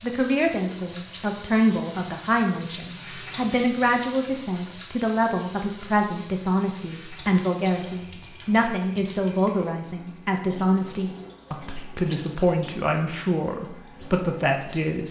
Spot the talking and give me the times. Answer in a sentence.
The talking can be heard from 0.0 to 15.0 s.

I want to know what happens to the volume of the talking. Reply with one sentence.
The loudness of the talking stays about the same.